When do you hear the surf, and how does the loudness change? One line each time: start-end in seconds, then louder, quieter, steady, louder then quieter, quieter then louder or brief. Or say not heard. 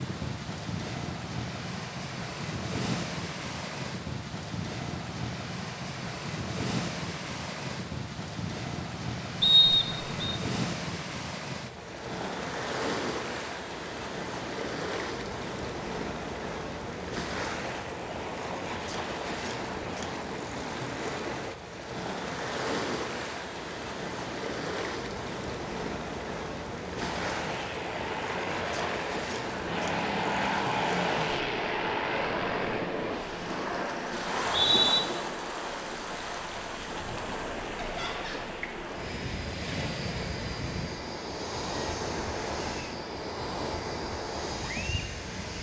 0.0-45.5 steady.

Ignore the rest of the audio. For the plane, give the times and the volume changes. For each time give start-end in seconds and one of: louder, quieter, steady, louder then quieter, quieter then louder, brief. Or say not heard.
26.9-45.5 quieter.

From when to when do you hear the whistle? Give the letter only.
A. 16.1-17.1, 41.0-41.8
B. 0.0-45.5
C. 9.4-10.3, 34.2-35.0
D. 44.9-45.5
C.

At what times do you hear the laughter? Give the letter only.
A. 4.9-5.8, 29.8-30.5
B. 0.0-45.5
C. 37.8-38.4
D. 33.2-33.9
C.